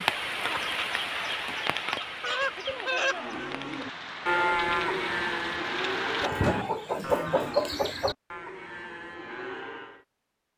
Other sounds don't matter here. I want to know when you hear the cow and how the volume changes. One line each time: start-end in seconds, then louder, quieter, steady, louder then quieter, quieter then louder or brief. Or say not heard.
3.1-10.1 quieter.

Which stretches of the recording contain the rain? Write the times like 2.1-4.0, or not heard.
0.0-6.3.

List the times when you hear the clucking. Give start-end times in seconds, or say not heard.
0.4-3.4, 6.2-8.2.